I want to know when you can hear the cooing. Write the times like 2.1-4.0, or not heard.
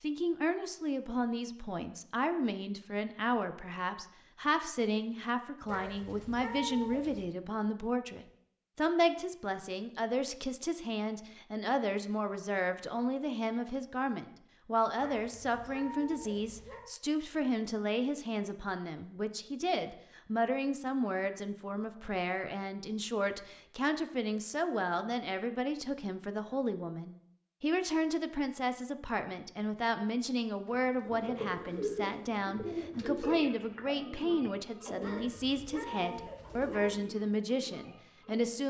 30.7-38.5.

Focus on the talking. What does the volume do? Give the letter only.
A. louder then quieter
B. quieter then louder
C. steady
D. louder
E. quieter
C.